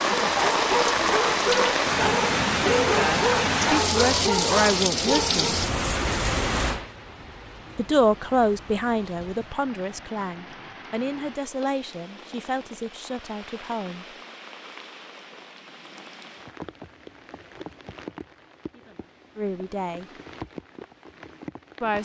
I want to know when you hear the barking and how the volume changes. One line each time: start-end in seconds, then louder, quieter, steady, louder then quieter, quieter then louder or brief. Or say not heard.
0.0-5.6 steady.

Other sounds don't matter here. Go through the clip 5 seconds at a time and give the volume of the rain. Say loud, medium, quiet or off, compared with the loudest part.
loud, medium, quiet, quiet, quiet.